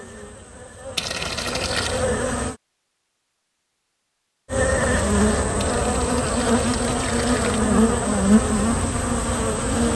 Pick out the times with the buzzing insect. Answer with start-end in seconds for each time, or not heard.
0.0-2.5, 4.5-9.9.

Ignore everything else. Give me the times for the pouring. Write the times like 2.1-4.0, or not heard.
0.9-2.0, 5.6-7.6.